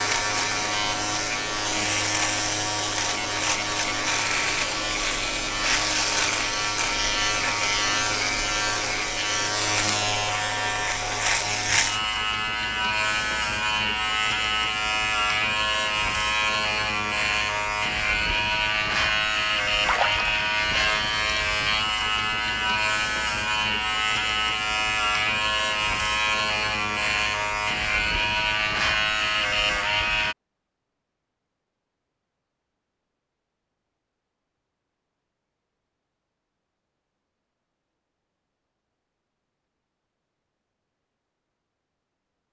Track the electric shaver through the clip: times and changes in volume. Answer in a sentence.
The electric shaver can be heard from 0.0 to 30.4 s, at a steady volume.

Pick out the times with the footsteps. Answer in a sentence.
You can't hear the footsteps here.